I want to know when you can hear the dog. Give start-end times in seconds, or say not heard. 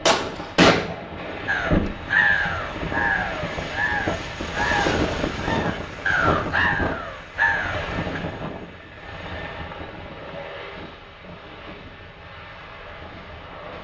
not heard.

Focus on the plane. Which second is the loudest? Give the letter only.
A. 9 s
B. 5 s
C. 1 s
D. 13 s
B.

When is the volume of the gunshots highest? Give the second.
1 s.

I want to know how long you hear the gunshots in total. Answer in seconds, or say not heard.
2 s.